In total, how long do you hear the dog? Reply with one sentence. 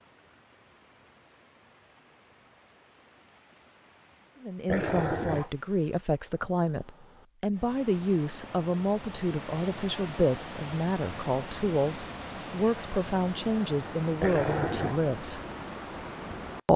You can hear the dog for 2 seconds altogether.